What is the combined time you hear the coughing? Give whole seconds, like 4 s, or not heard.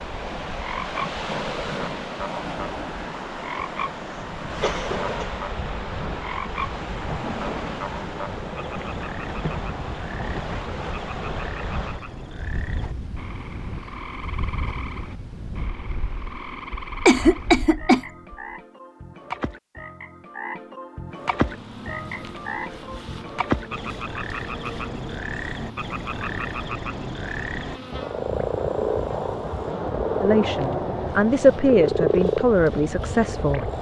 2 s.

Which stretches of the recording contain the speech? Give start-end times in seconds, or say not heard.
30.2-33.7.